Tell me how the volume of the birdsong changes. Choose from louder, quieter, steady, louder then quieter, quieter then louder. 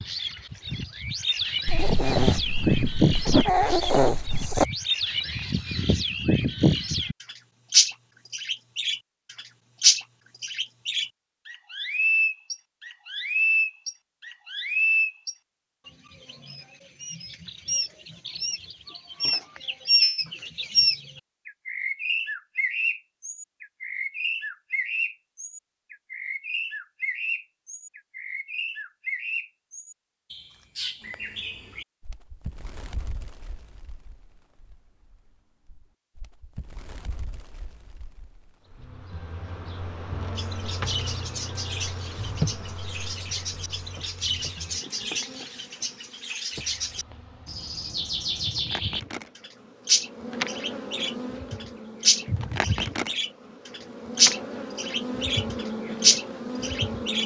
quieter then louder.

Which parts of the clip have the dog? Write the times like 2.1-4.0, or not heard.
1.6-4.7.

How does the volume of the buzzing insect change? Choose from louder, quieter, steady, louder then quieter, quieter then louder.
quieter then louder.